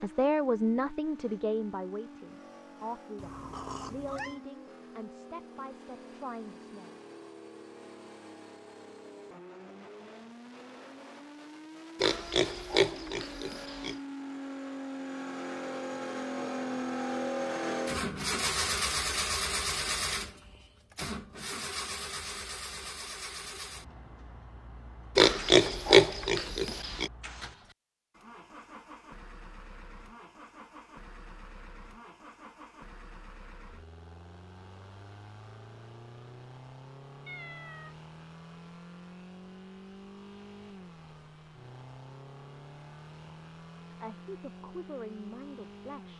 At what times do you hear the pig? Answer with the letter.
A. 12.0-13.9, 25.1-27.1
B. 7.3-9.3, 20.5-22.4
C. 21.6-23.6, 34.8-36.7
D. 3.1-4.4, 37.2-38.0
A.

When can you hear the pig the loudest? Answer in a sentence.
The loudest moment of the pig is at 26 seconds.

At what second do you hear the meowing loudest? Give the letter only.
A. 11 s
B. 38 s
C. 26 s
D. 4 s
D.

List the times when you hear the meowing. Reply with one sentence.
The meowing can be heard from 3.1 to 4.4 s and from 37.2 to 38.0 s.